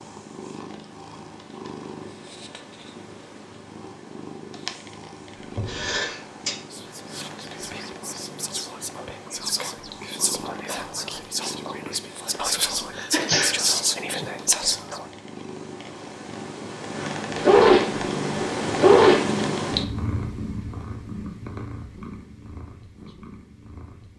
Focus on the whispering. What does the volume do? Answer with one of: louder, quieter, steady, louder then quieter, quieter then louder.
louder.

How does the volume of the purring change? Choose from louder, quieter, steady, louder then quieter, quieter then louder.
louder.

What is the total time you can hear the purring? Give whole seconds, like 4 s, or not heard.
24 s.